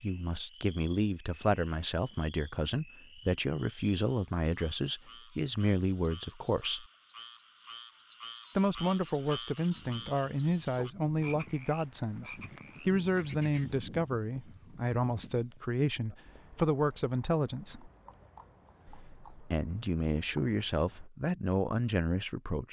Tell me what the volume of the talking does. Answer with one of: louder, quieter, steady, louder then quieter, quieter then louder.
steady.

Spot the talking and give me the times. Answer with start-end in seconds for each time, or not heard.
0.0-6.8, 8.6-17.9, 18.9-22.6.